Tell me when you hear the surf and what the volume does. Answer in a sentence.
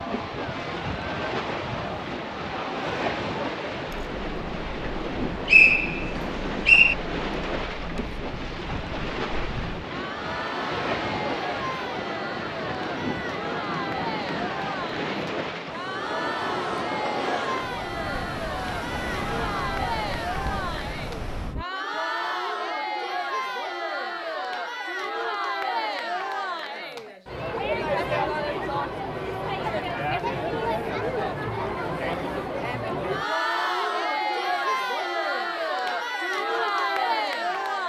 The surf can be heard from 0.0 to 21.6 s, at a steady volume.